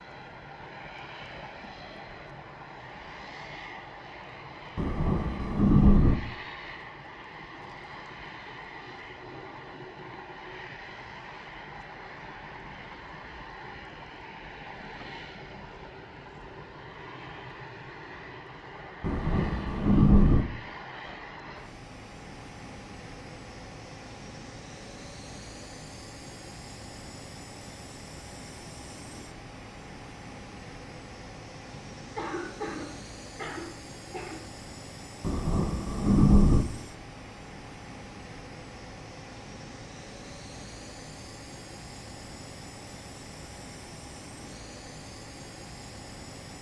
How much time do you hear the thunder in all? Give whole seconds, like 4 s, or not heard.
4 s.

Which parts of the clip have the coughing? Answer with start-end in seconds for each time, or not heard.
31.7-34.5.